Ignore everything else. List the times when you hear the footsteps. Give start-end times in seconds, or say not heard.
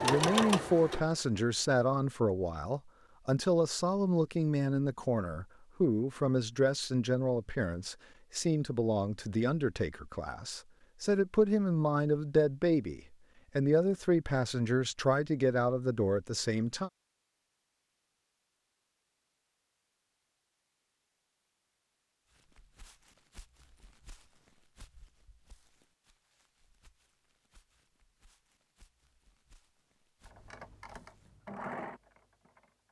22.3-31.4.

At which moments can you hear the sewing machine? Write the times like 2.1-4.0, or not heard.
0.0-1.8, 30.5-32.8.